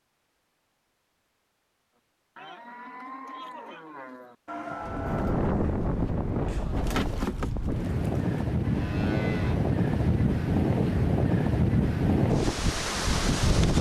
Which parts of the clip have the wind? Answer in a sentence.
The wind can be heard from 4.8 to 13.7 s.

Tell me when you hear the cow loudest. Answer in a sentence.
The volume of the cow peaks at 7 seconds.